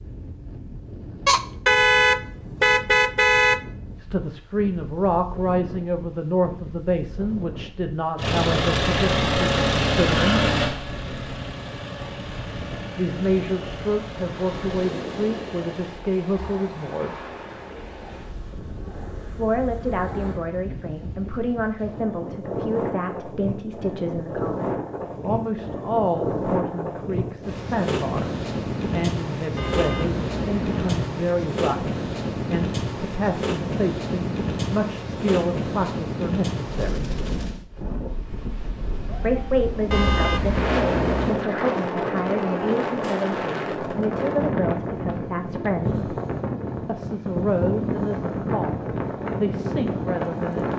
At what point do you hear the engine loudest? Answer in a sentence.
The loudest moment of the engine is at 10 seconds.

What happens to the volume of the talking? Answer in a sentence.
The loudness of the talking stays about the same.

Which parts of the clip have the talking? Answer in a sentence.
The talking can be heard from 4.0 to 10.5 s, from 12.9 to 17.1 s, from 19.3 to 37.1 s, from 39.2 to 46.0 s and from 46.9 to 50.5 s.